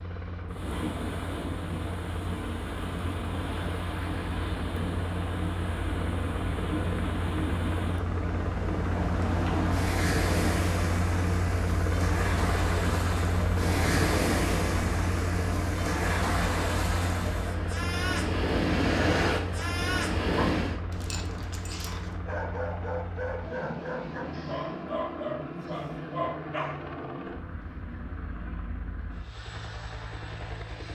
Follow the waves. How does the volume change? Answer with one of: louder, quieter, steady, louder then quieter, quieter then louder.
louder.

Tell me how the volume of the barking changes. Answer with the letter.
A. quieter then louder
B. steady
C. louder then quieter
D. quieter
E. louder
E.